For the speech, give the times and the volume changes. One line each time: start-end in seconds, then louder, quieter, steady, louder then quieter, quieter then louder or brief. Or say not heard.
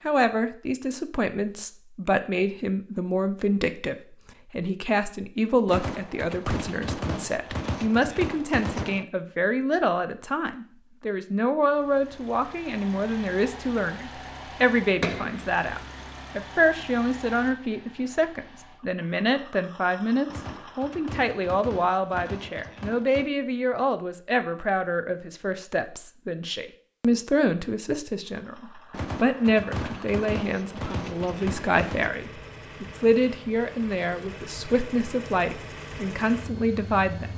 0.1-37.3 steady.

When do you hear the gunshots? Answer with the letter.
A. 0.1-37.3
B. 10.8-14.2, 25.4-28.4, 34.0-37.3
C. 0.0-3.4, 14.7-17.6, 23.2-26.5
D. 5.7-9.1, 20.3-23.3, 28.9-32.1
D.